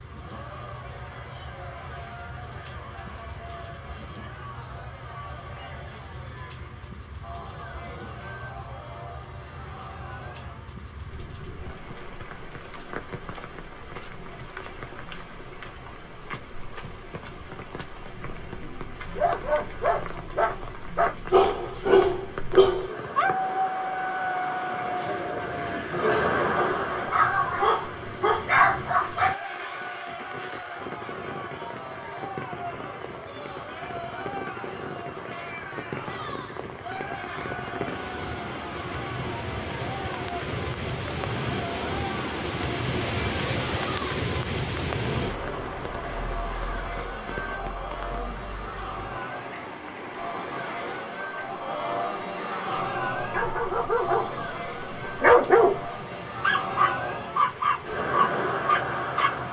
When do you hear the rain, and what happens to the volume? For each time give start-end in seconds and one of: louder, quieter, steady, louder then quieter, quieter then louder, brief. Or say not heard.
0.0-59.4 louder then quieter.